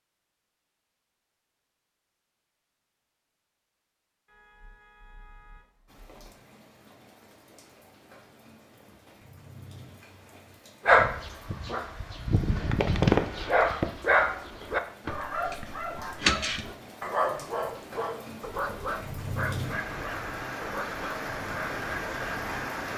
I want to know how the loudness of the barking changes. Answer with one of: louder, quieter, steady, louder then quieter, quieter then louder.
quieter.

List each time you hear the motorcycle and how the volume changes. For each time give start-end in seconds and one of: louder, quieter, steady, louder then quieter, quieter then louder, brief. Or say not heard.
not heard.